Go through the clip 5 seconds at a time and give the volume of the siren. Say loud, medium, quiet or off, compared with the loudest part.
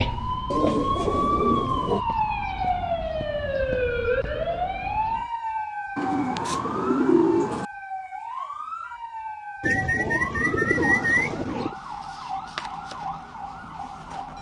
loud, medium, medium.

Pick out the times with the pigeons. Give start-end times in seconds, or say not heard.
0.5-2.0, 6.0-7.7, 9.6-11.8.